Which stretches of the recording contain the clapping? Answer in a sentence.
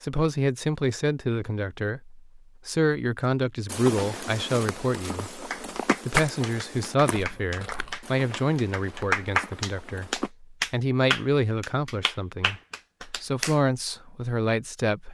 You can hear the clapping from 5.5 to 13.6 s.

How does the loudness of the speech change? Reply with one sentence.
The volume of the speech stays about the same.